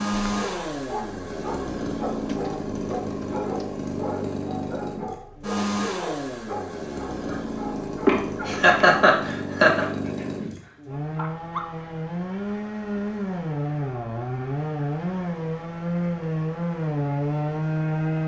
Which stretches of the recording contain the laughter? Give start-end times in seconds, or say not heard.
8.1-9.8.